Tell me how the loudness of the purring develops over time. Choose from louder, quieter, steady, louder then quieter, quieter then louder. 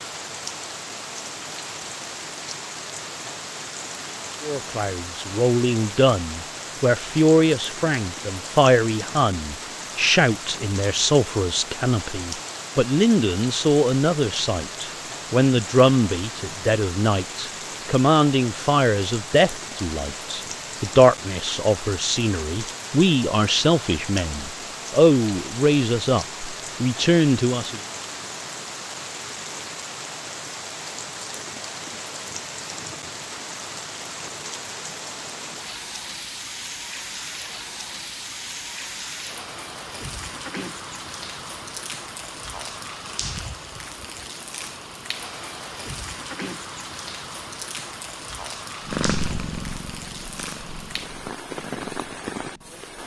quieter.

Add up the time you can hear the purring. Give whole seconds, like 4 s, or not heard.
4 s.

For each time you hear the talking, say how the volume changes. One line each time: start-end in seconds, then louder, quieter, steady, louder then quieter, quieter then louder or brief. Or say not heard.
4.4-27.8 steady.